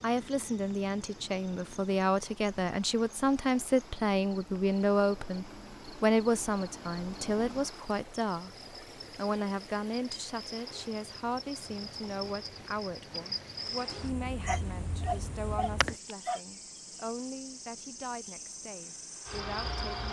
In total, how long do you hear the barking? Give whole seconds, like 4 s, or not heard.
2 s.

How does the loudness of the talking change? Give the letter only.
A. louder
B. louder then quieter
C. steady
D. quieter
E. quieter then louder
D.